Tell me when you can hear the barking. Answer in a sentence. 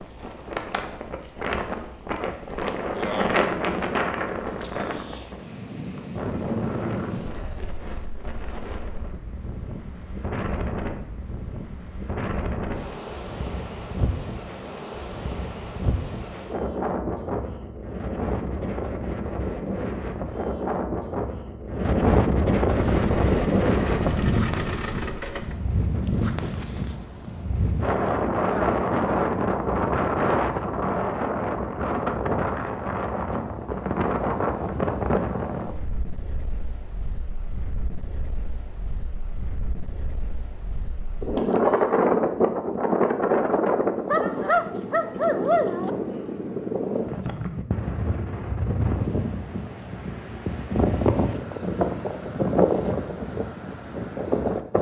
The barking can be heard from 44.0 to 45.9 s.